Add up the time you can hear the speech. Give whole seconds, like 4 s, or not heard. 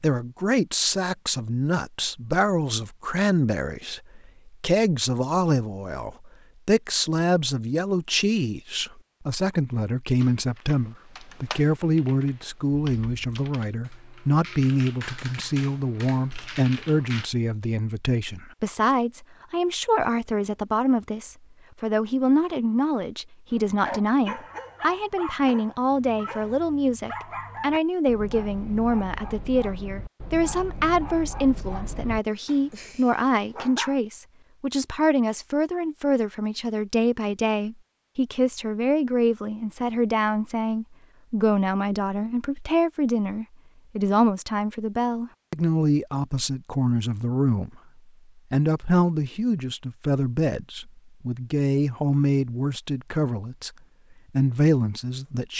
54 s.